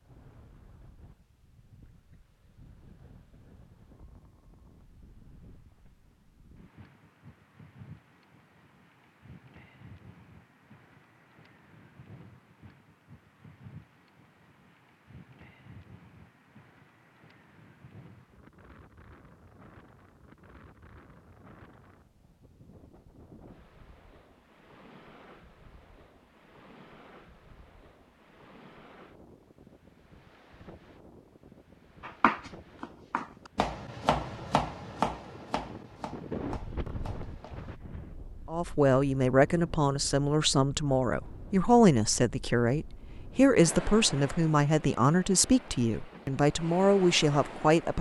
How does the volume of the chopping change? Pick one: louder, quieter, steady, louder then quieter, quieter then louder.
louder then quieter.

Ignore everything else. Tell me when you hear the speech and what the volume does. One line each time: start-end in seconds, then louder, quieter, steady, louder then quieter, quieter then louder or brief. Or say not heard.
38.5-47.9 steady.